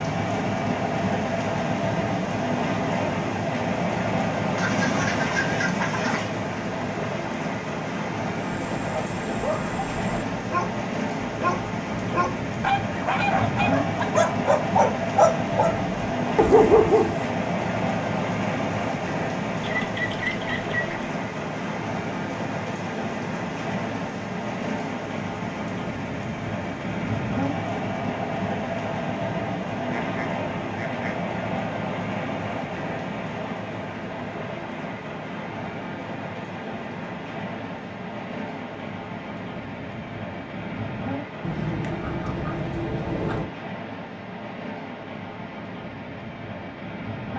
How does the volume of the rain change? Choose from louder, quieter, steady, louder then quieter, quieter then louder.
quieter.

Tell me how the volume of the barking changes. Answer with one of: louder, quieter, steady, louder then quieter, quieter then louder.
louder.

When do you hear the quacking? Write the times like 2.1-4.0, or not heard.
4.5-6.3, 19.6-20.9, 29.9-31.2, 41.4-43.5.